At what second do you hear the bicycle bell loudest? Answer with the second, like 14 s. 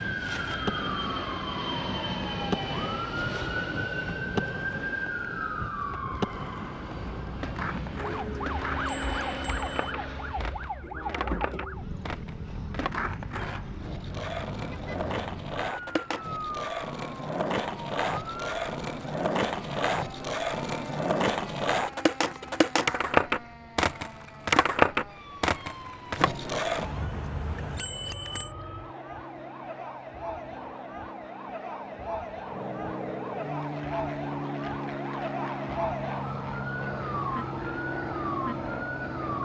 28 s.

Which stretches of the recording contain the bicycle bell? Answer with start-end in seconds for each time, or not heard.
8.1-9.9, 26.8-28.5.